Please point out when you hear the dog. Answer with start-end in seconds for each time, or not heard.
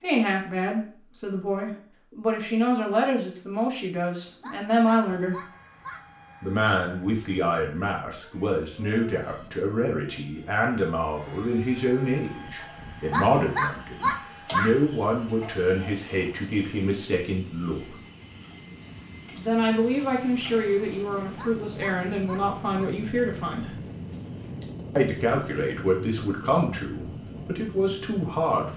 4.4-6.0, 13.1-14.7, 21.4-22.9.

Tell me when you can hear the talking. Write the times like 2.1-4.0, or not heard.
0.0-5.4, 6.4-17.9, 19.4-23.8, 24.9-28.7.